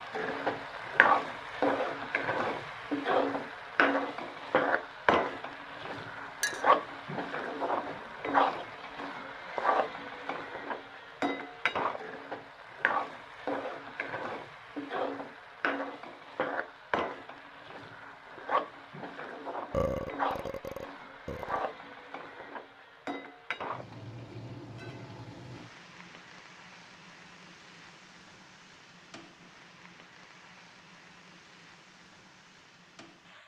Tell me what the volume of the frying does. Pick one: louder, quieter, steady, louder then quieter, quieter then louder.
quieter.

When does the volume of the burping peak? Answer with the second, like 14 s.
20 s.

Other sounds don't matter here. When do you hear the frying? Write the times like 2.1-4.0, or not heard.
0.0-33.4.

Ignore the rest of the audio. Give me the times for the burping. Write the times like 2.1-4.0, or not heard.
19.7-21.6.